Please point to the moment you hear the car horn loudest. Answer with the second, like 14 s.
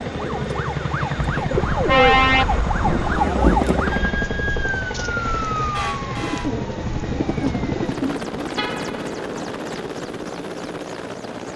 2 s.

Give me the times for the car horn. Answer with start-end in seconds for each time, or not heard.
1.5-3.3, 8.6-9.0.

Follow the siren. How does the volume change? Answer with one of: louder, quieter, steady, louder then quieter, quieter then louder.
louder then quieter.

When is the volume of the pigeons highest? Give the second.
2 s.